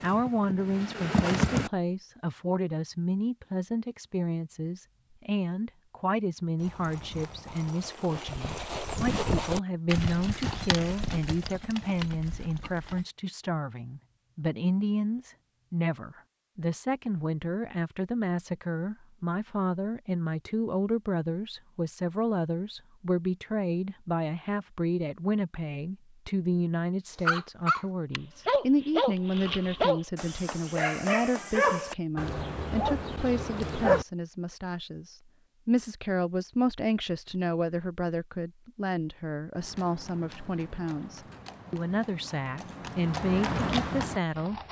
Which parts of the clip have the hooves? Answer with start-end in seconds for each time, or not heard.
0.0-1.7, 6.5-13.1, 39.5-44.6.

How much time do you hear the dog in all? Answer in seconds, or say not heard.
7 s.